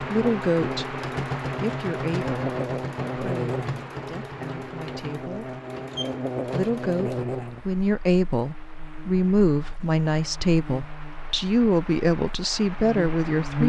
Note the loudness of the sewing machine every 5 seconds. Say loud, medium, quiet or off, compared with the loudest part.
loud, loud, off.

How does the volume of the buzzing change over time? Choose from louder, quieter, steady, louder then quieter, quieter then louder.
quieter then louder.